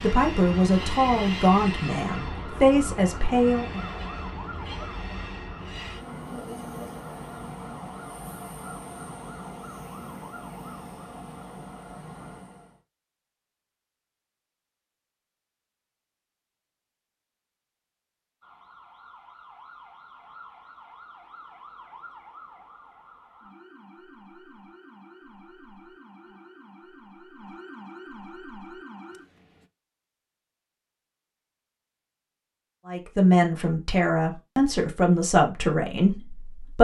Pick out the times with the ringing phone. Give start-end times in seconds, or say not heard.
not heard.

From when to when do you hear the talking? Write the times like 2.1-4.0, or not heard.
0.0-3.9, 32.9-36.8.